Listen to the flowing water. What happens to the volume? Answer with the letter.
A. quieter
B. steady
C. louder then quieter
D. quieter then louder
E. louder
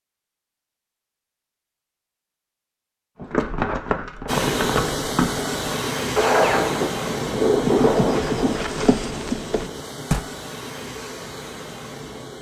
A.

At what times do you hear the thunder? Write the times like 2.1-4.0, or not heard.
6.5-8.6.